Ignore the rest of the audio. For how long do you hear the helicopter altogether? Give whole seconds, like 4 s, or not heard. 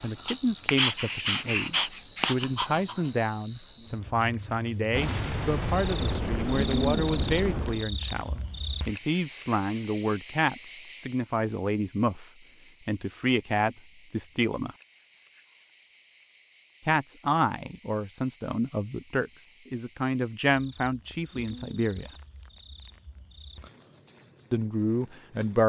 not heard.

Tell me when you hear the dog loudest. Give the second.
1 s.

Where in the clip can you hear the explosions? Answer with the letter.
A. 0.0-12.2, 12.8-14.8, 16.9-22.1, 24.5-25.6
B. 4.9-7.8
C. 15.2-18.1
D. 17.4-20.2
B.